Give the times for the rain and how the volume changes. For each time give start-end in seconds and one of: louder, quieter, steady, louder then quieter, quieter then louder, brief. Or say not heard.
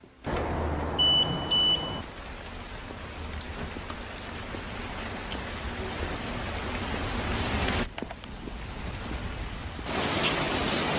0.0-10.9 louder.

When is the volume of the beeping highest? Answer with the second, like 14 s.
1 s.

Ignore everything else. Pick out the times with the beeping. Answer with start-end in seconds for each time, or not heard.
0.2-2.0, 7.7-8.2.